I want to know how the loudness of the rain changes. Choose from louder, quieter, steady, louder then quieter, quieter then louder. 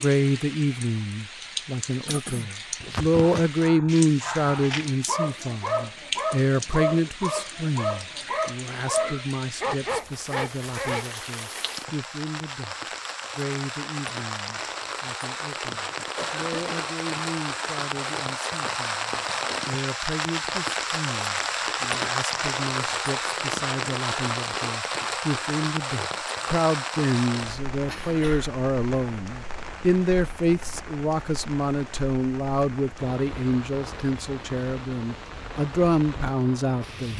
louder then quieter.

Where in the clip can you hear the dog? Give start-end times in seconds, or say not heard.
2.8-11.1.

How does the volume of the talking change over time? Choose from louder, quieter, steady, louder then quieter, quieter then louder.
quieter then louder.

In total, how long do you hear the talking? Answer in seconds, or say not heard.
37 s.